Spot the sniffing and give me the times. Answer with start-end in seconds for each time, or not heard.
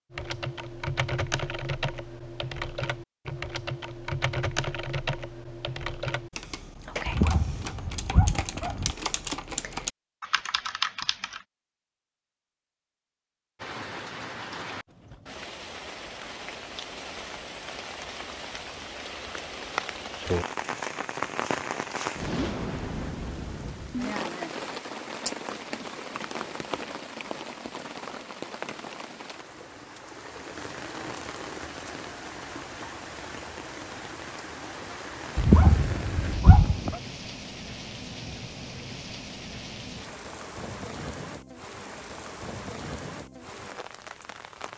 not heard.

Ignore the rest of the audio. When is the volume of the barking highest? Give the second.
36 s.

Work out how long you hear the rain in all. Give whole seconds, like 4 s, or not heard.
31 s.